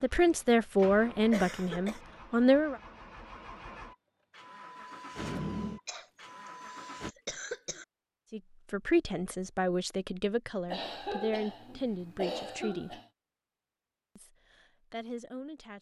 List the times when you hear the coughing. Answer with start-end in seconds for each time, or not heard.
1.3-2.0, 5.8-7.8, 10.7-13.1.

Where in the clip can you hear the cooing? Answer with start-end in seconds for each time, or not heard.
not heard.